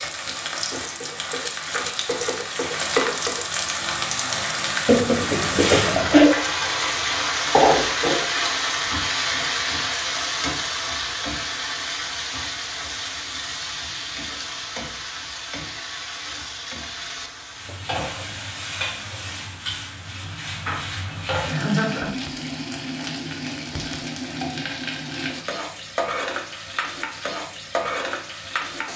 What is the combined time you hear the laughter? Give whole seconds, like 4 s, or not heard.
2 s.